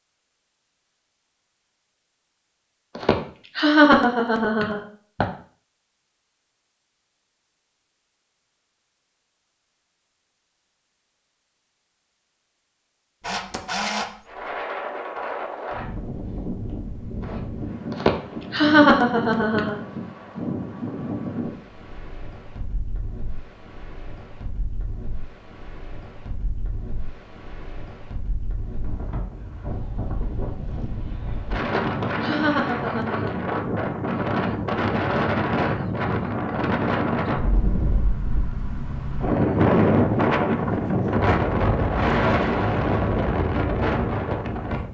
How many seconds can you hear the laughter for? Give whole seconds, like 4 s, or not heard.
6 s.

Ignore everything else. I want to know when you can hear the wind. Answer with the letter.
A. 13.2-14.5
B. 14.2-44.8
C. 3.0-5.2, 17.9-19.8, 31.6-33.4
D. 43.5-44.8
B.